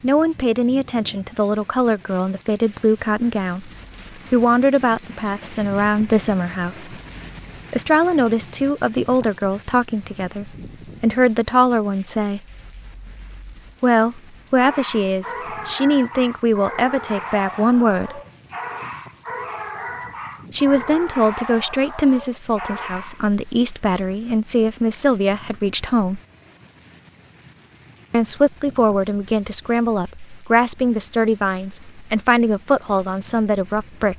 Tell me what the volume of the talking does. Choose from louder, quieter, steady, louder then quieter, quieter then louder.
steady.